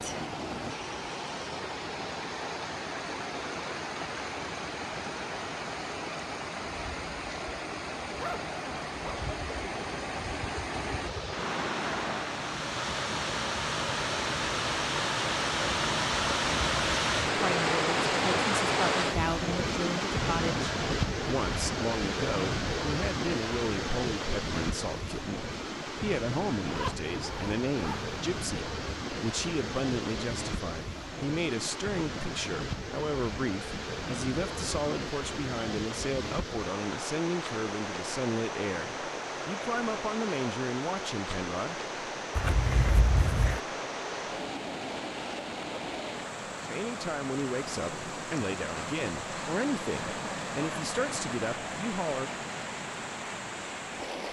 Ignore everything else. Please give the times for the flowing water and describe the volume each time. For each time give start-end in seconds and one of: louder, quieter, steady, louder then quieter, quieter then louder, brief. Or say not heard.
0.0-54.2 louder then quieter.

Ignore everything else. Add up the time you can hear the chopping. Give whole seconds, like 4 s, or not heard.
not heard.